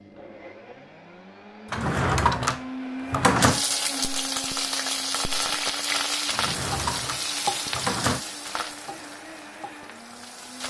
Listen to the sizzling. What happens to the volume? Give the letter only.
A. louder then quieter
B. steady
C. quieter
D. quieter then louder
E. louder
C.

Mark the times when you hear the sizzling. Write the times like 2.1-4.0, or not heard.
3.4-10.6.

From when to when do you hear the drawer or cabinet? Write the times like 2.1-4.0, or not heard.
1.7-3.6, 6.3-8.2.